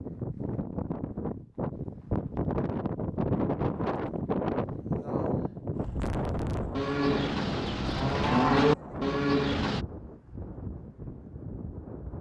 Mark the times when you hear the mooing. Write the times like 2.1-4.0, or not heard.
6.8-9.8.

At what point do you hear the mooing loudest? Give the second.
9 s.